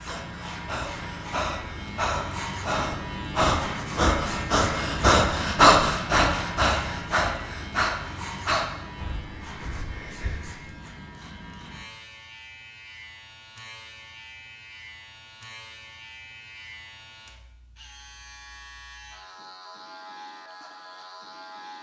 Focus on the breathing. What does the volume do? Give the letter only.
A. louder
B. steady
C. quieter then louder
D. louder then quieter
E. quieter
D.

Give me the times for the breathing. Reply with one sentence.
You can hear the breathing from 0.1 to 10.6 s.